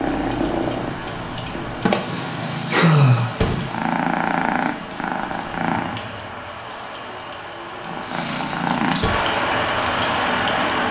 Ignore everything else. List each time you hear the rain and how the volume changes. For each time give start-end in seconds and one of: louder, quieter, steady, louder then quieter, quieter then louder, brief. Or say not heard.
0.0-10.8 louder.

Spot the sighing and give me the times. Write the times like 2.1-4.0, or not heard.
2.4-3.4.